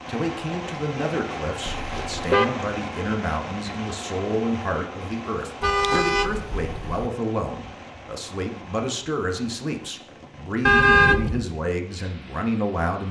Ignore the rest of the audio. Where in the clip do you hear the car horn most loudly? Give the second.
11 s.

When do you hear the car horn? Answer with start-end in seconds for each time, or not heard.
1.6-2.5, 5.6-7.1, 10.7-11.4.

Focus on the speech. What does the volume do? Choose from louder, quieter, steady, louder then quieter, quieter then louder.
steady.